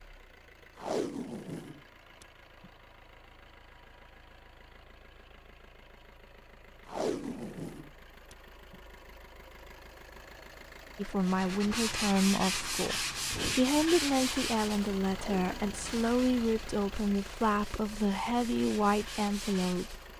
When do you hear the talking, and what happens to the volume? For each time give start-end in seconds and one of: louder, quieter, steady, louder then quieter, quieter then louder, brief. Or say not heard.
10.9-19.9 steady.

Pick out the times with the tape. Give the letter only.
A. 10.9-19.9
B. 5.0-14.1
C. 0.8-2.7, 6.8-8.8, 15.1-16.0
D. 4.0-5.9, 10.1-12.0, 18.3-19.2
C.